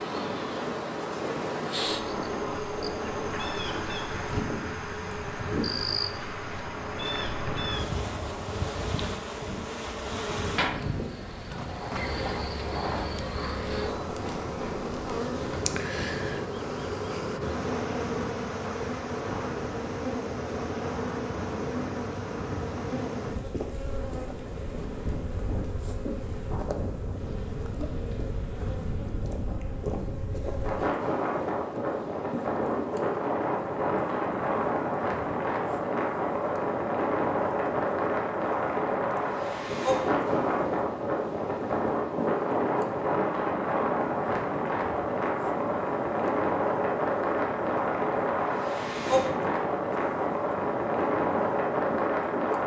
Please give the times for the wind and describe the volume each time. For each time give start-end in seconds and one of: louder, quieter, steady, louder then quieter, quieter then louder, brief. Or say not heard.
0.0-52.6 louder.